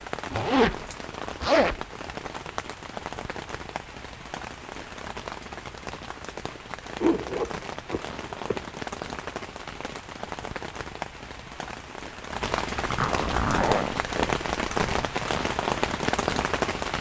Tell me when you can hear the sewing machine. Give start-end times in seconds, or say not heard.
not heard.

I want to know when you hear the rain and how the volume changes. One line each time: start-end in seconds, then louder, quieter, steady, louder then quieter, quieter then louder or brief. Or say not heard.
0.0-16.9 louder.